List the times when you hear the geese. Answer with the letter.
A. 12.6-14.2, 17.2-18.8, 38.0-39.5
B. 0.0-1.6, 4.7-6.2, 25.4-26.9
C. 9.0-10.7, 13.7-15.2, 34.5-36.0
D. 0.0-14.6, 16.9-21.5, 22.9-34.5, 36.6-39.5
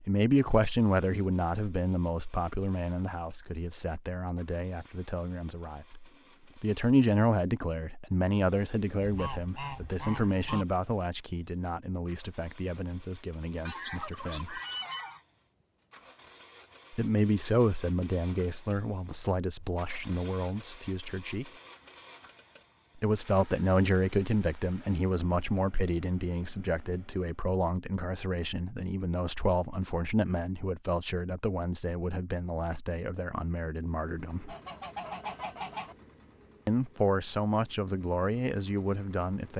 C.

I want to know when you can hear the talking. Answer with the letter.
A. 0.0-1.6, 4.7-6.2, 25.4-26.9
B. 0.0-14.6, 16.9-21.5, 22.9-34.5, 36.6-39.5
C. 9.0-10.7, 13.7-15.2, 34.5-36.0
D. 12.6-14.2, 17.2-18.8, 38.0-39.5
B.